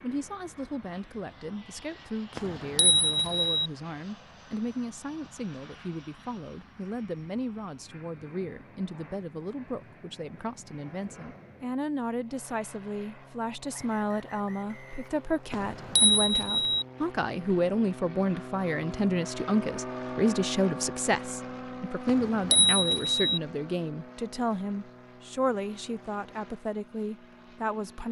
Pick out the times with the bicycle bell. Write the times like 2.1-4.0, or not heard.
2.4-3.7, 15.5-16.9, 22.1-23.4.